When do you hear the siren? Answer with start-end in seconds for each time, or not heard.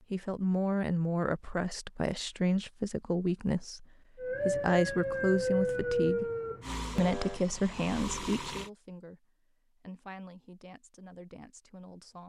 4.2-7.4.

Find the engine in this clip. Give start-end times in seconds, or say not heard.
6.6-8.7.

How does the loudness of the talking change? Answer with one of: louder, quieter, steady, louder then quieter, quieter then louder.
quieter.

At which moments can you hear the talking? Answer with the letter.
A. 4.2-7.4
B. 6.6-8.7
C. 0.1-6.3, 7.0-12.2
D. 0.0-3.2
C.